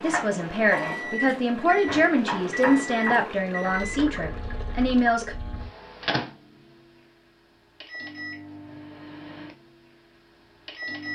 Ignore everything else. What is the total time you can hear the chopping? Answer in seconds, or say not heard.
4 s.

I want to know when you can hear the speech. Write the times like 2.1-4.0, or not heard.
0.0-5.3.